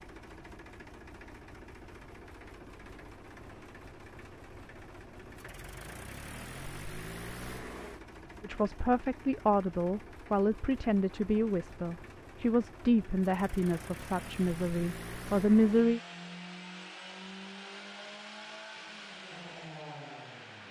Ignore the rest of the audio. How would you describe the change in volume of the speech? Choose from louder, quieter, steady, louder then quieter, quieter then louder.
steady.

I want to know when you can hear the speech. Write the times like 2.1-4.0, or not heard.
8.4-16.0.